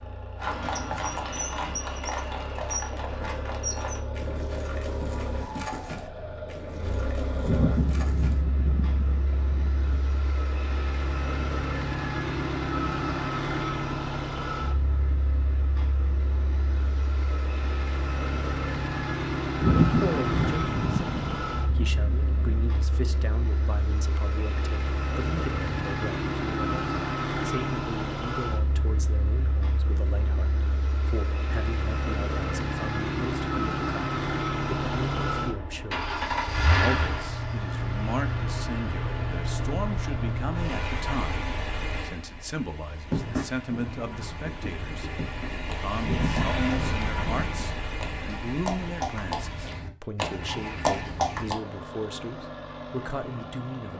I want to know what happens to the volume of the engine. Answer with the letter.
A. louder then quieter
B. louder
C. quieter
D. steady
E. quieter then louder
A.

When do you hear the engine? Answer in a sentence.
The engine can be heard from 0.0 to 53.9 s.